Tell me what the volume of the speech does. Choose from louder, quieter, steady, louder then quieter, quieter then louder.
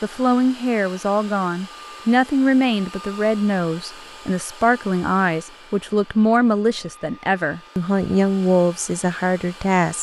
steady.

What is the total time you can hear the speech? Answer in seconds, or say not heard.
10 s.